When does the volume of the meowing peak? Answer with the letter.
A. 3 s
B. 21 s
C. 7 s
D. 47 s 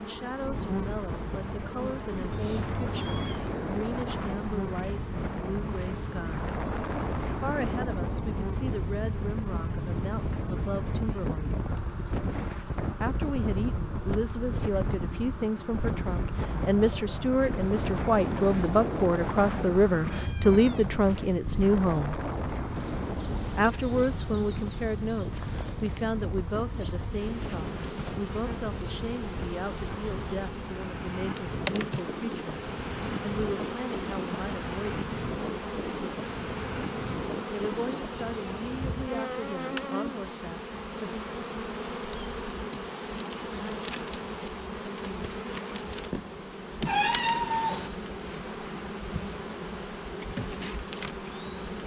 D.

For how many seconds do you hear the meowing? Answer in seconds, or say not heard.
3 s.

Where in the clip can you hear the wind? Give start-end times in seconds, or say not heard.
0.0-39.1.